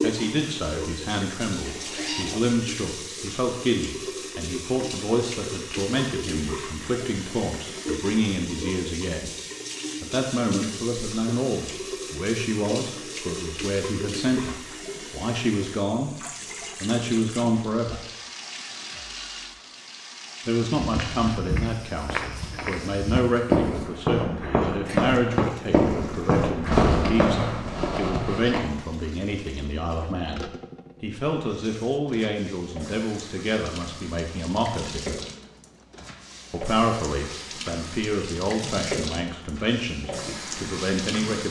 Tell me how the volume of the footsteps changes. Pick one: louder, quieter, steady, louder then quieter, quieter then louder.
louder.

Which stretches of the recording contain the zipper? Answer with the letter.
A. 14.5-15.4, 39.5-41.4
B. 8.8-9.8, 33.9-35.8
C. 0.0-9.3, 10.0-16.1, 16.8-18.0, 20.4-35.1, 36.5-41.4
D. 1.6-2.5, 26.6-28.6
D.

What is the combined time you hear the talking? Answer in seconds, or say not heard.
36 s.